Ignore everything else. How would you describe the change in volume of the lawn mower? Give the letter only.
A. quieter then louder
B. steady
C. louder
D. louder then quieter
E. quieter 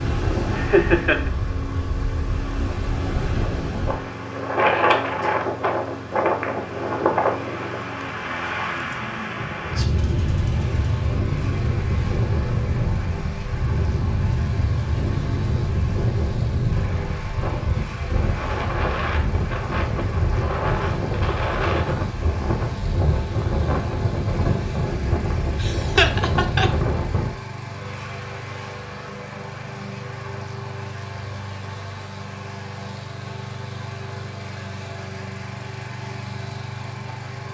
B.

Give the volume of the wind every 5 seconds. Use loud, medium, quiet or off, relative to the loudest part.
loud, loud, loud, loud, loud, loud, off, off.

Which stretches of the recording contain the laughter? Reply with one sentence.
The laughter can be heard from 0.5 to 1.3 s and from 25.6 to 26.7 s.